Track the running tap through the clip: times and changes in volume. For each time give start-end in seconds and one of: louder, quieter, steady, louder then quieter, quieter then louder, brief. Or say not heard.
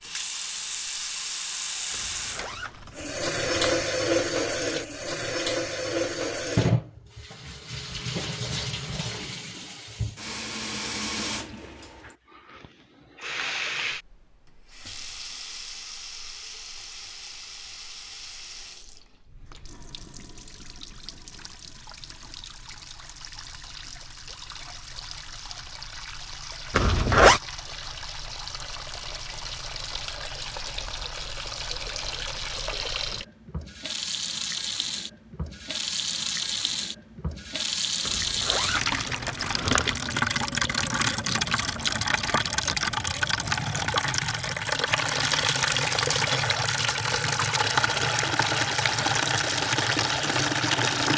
0.0-51.1 quieter then louder.